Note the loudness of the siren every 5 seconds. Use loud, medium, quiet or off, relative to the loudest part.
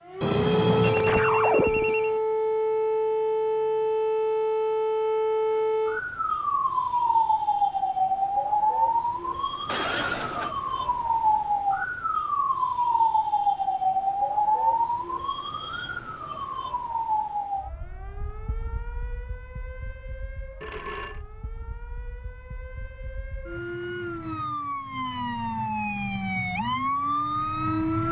loud, loud, loud, medium, quiet, loud.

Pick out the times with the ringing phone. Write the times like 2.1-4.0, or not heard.
0.2-2.1, 9.7-10.6, 20.6-21.2.